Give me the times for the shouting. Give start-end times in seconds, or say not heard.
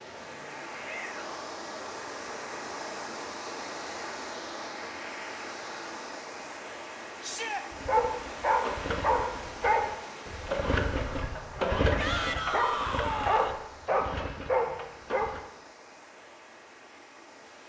0.7-1.4, 7.2-7.7, 11.9-13.6.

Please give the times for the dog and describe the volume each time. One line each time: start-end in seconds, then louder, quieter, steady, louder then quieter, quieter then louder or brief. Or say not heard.
7.7-15.4 steady.